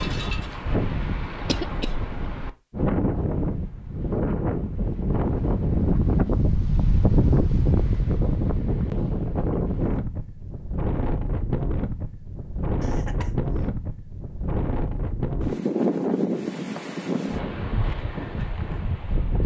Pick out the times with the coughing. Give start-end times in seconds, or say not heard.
1.4-1.9, 12.8-13.7.